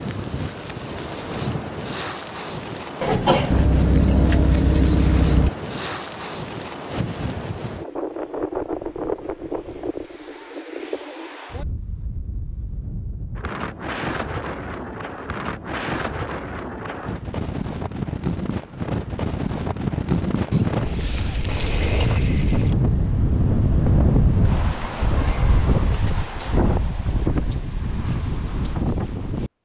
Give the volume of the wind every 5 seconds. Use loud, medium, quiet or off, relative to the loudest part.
medium, medium, medium, medium, loud, loud.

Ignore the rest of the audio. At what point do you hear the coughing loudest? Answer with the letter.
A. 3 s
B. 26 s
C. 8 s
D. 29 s
A.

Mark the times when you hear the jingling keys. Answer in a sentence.
You can hear the jingling keys from 3.5 to 5.5 s and from 20.5 to 22.0 s.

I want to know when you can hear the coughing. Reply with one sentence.
You can hear the coughing from 3.0 to 4.5 s.